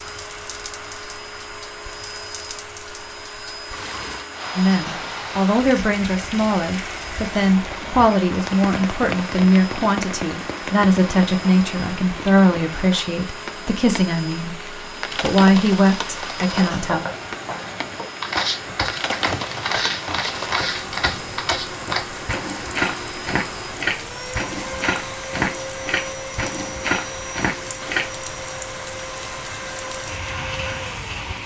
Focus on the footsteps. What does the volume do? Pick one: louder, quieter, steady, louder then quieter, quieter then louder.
steady.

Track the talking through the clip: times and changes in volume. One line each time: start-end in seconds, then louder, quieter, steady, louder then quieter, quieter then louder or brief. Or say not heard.
4.5-14.6 steady
15.2-17.1 brief.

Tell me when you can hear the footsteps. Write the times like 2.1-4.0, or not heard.
16.5-28.1.